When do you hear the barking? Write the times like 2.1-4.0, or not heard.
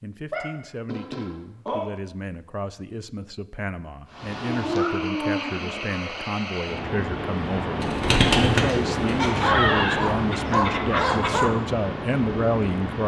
0.3-1.9, 4.4-6.2, 9.2-11.5.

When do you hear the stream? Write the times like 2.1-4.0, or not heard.
4.0-13.0.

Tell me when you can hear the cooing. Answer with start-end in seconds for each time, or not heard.
7.8-9.3.